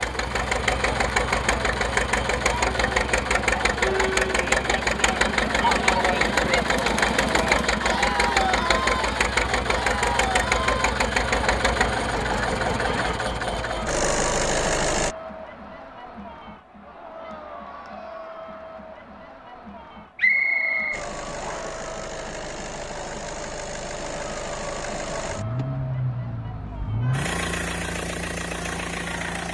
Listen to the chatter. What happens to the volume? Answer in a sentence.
The loudness of the chatter goes down.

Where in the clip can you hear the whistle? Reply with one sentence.
You can hear the whistle from 20.1 to 21.8 s.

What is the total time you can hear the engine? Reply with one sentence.
The engine can be heard for 24 seconds in total.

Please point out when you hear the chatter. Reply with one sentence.
The chatter can be heard from 0.0 to 29.4 s.